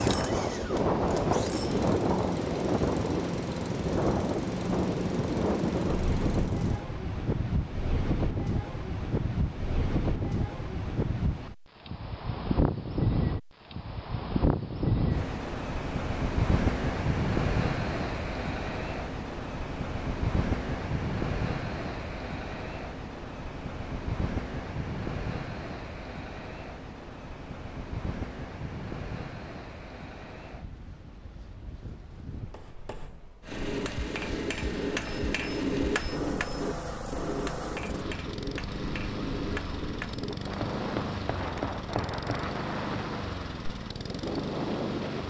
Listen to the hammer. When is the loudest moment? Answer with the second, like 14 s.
36 s.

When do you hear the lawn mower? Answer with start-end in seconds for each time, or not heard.
0.0-6.8, 33.4-45.2.